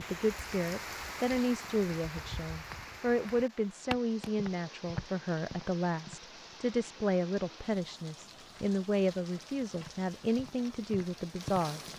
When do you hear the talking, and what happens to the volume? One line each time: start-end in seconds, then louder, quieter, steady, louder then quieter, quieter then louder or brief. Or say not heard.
0.0-11.8 steady.